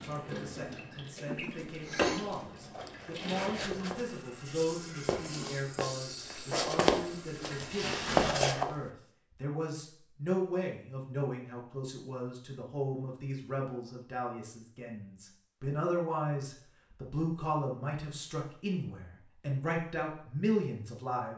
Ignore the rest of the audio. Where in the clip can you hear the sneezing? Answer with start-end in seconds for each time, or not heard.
1.2-2.5.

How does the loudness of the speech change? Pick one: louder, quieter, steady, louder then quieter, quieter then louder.
louder.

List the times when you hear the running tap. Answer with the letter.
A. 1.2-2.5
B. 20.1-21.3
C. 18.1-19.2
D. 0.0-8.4
D.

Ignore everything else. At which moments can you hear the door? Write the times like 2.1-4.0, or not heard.
not heard.